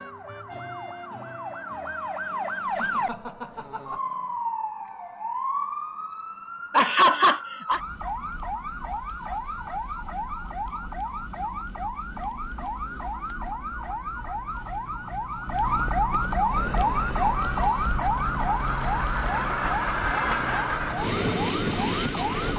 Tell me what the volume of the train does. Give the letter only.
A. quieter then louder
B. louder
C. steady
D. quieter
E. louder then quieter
B.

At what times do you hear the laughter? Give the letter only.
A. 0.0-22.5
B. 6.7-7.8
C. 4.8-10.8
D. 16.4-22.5
B.